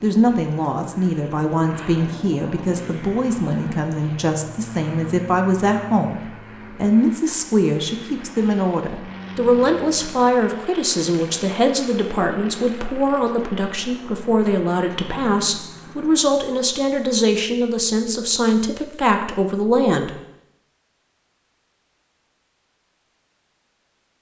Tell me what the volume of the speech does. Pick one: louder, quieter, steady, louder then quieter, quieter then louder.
steady.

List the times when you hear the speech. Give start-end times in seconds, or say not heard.
0.0-20.1.